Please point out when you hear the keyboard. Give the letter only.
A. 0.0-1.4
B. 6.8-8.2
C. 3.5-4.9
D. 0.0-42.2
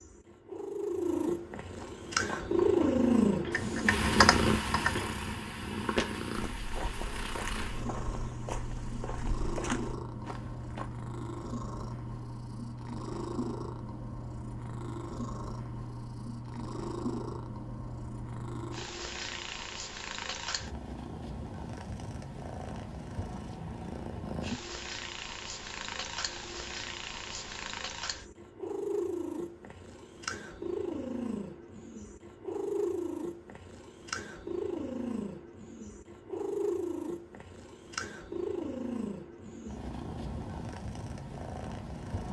C.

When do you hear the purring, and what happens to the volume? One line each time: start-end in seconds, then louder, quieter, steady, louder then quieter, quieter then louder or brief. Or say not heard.
0.0-42.2 quieter.